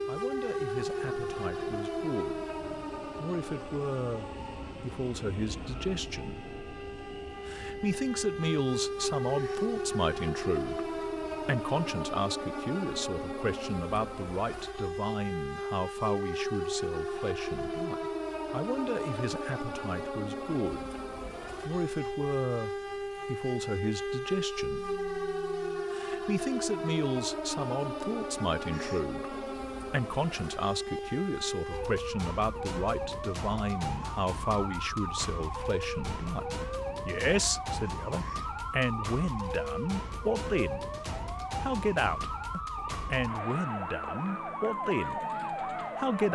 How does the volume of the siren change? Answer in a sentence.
The loudness of the siren stays about the same.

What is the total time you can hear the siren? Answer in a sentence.
You can hear the siren for 46 seconds altogether.